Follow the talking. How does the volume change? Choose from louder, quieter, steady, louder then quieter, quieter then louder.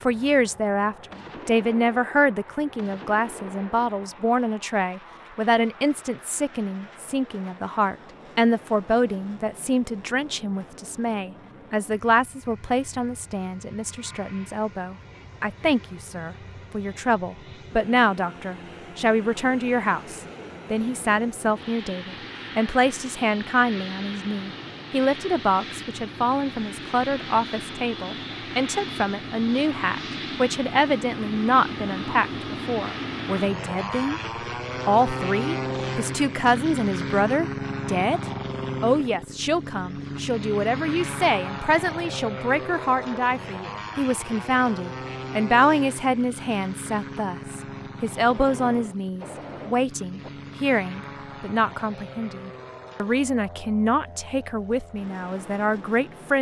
steady.